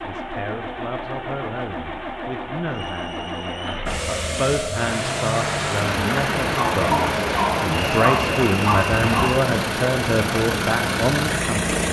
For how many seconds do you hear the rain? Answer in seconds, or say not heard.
7 s.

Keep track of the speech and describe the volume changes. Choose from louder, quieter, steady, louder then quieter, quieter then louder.
louder.